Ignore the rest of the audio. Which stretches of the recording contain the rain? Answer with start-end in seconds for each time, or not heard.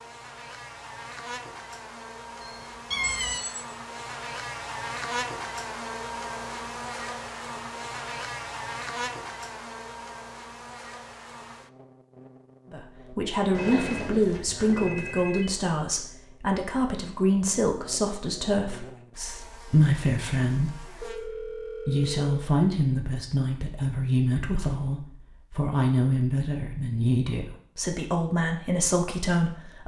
not heard.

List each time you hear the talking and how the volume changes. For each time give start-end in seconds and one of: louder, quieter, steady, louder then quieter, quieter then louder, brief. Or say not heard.
12.7-29.8 steady.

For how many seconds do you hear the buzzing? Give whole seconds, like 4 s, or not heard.
21 s.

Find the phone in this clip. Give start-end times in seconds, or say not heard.
3.0-3.6, 13.5-15.5, 21.0-22.5.